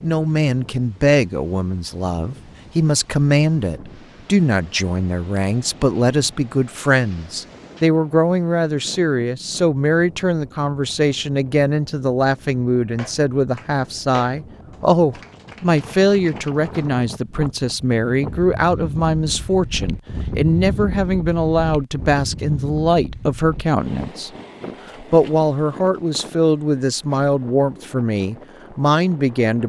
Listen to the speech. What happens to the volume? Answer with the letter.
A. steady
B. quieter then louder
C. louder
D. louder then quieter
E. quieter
A.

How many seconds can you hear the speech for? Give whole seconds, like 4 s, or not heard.
29 s.